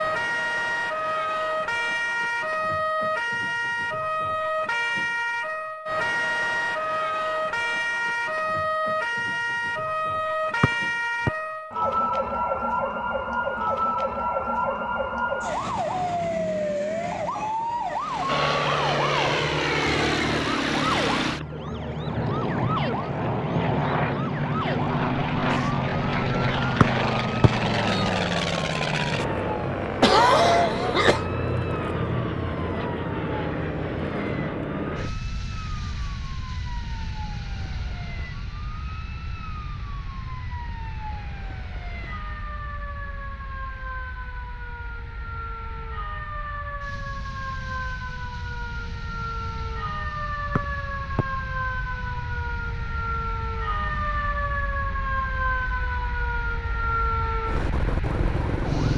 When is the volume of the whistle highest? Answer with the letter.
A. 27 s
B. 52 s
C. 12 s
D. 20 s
A.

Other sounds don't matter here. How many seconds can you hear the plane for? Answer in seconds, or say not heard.
41 s.